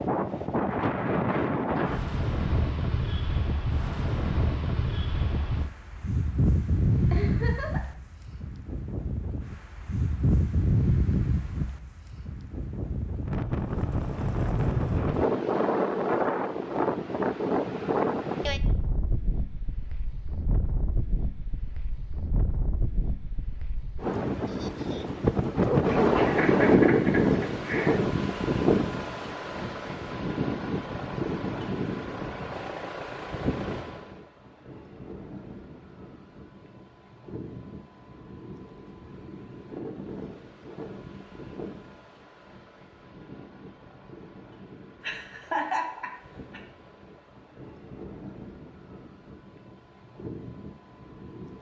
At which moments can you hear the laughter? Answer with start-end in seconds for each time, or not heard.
7.1-8.0, 26.1-28.0, 45.0-46.6.